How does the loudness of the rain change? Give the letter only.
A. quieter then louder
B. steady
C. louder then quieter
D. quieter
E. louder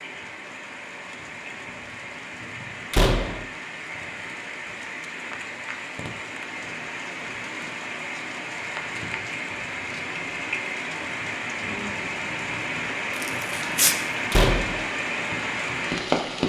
E.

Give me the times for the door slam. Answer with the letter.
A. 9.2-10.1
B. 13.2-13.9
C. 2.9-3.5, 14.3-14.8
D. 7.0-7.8
C.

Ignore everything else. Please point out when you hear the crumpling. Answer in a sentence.
The crumpling can be heard from 13.2 to 13.9 s.